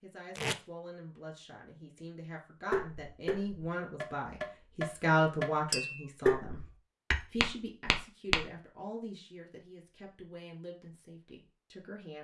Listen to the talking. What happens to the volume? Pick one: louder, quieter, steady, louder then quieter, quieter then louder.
louder then quieter.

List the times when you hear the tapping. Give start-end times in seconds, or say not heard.
2.7-8.4.